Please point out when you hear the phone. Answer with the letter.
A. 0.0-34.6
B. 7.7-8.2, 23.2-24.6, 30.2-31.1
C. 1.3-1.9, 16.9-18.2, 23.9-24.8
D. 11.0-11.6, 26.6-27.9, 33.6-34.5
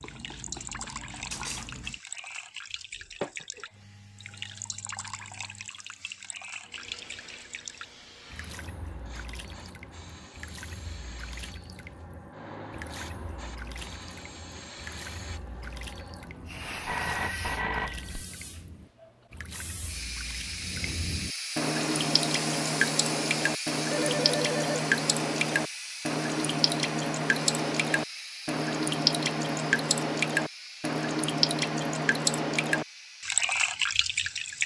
C.